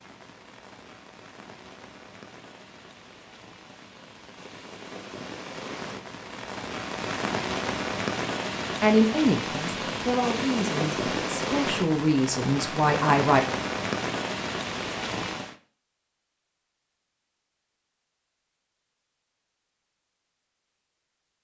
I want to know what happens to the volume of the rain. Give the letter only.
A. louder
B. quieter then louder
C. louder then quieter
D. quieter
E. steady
A.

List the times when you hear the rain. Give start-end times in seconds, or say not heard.
0.0-15.6.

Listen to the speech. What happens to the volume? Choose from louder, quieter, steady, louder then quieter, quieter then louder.
quieter then louder.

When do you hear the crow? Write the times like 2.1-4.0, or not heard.
not heard.